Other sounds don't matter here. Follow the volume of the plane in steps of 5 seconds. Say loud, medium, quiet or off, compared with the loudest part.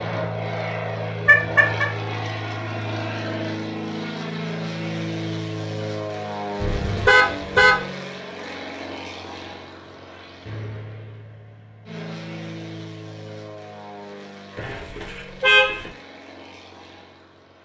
loud, loud, medium, quiet.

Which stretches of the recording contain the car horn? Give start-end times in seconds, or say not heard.
1.2-1.9, 6.6-7.8, 14.6-15.9.